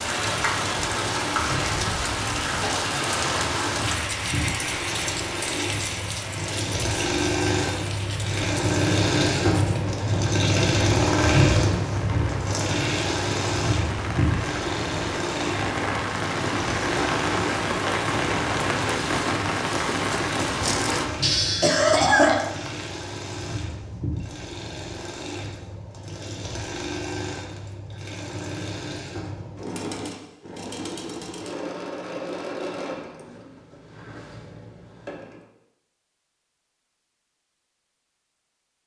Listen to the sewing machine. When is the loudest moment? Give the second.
11 s.